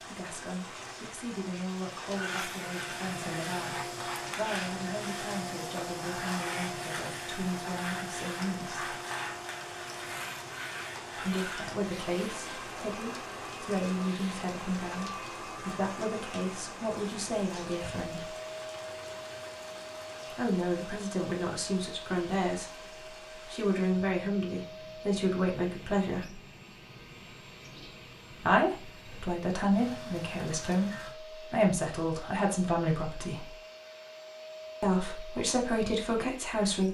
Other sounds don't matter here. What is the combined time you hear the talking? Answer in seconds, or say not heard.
29 s.